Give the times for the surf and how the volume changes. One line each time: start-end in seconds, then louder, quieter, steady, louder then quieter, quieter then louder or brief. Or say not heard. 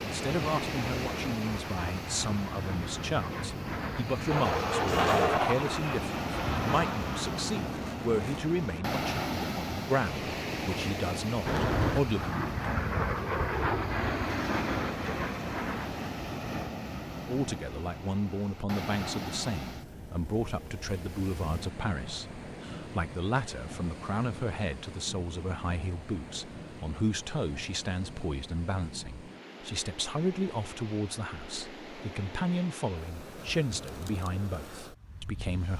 0.0-35.7 quieter.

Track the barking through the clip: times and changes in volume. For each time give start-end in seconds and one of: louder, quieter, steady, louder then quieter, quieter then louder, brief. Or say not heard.
not heard.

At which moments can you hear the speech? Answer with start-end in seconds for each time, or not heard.
0.0-12.4, 17.2-35.7.